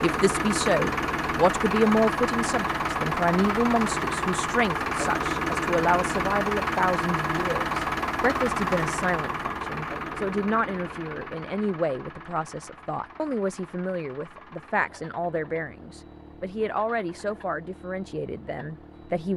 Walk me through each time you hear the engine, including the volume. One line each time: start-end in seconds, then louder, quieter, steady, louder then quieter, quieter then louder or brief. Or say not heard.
0.0-19.3 quieter.